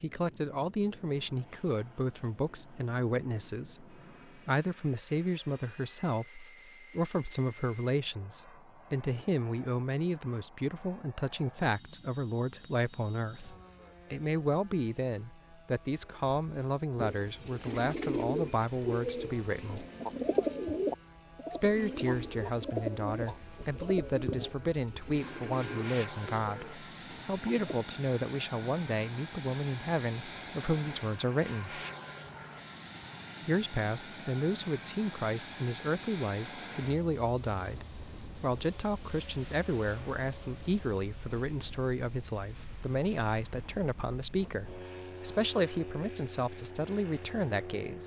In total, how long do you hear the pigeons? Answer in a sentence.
You can hear the pigeons for 11 seconds altogether.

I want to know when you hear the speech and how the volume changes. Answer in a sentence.
You can hear the speech from 0.0 to 19.9 s, at a steady volume; from 21.5 to 31.8 s, at a steady volume; and from 33.5 to 48.0 s, at a steady volume.